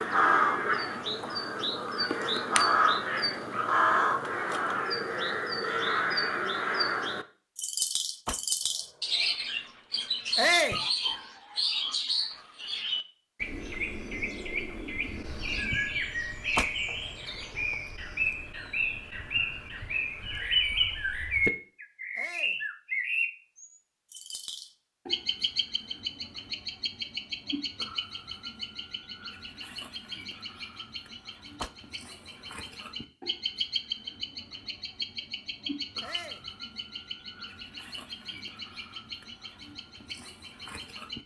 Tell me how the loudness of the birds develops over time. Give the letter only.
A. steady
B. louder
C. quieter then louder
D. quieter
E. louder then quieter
D.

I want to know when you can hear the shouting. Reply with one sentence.
You can hear the shouting from 10.3 to 10.8 s, from 22.1 to 22.6 s and from 36.0 to 36.5 s.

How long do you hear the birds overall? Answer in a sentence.
You can hear the birds for 41 seconds altogether.